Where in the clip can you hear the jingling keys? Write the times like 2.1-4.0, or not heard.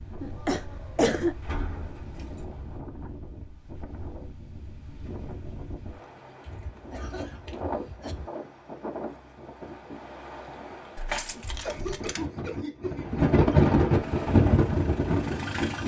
1.4-2.5, 6.5-8.3, 10.9-12.2.